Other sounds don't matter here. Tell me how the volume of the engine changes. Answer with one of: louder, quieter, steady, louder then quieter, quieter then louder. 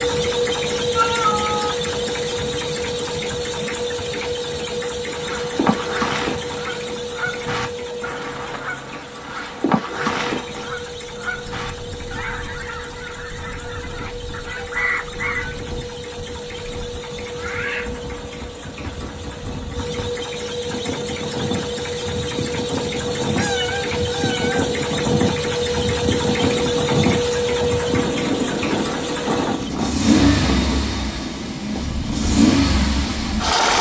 quieter then louder.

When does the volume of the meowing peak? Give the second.
1 s.